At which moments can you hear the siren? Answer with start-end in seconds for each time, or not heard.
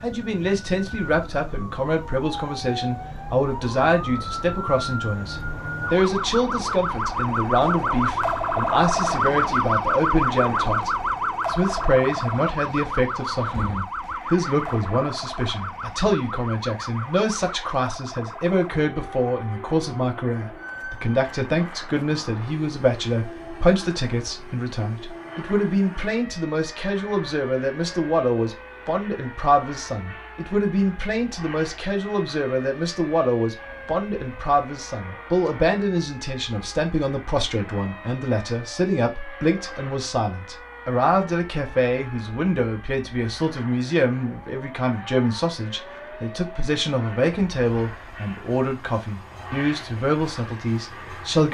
0.0-51.4.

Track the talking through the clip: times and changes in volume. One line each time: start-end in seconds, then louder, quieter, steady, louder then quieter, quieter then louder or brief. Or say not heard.
0.0-51.4 steady.